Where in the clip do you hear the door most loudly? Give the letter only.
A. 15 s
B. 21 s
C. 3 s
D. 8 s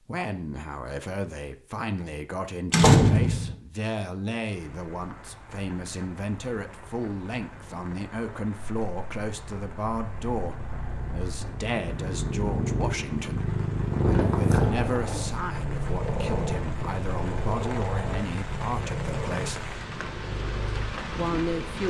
C.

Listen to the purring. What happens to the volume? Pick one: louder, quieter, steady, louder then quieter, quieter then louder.
louder then quieter.